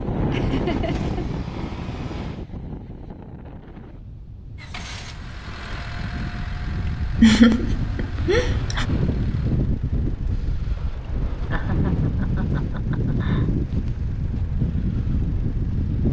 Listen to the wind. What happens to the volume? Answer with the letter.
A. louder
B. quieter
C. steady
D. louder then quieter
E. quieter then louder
E.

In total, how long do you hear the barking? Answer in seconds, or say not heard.
not heard.